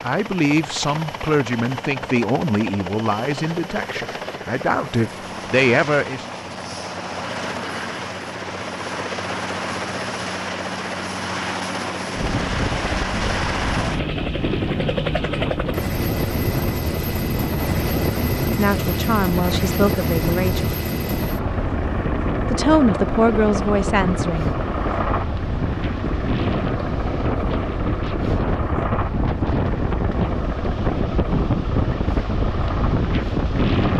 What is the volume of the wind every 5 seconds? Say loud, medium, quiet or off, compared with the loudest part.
off, off, medium, medium, medium, loud, loud.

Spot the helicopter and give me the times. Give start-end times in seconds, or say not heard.
0.0-33.9.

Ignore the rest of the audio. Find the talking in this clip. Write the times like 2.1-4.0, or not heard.
0.0-6.2, 18.4-20.7, 22.5-24.6.